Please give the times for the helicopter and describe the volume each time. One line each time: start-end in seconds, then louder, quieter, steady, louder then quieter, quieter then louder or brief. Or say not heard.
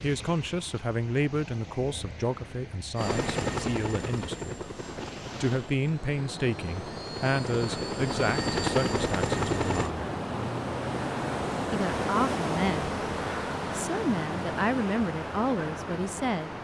3.0-9.9 quieter then louder.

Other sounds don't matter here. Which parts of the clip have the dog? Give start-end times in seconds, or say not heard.
not heard.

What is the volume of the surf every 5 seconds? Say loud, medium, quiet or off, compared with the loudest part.
quiet, medium, loud, medium.